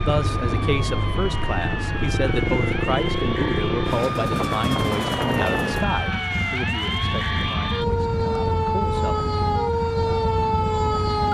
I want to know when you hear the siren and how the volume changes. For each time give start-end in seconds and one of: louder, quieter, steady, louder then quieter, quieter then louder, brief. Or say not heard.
0.0-11.3 louder.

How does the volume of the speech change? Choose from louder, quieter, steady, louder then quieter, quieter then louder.
quieter.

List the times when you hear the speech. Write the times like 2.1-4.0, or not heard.
0.0-9.3.